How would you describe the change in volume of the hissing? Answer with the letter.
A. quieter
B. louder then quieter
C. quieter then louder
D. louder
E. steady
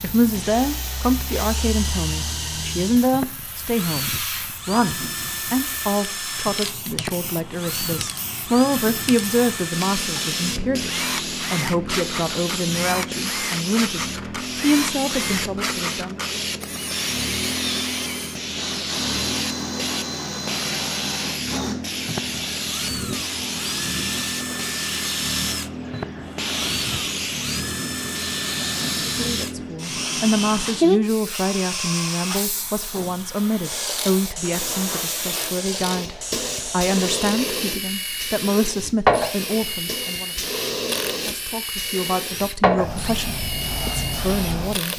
D.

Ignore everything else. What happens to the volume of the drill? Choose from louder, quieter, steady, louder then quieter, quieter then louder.
steady.